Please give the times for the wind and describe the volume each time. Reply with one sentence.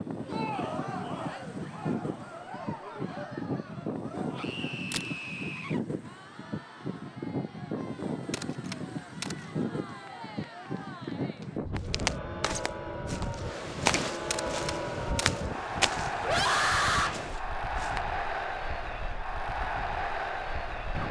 The wind can be heard from 0.0 to 21.0 s, getting quieter.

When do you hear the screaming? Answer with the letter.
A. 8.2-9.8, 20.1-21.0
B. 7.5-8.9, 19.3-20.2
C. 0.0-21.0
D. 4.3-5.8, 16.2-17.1
D.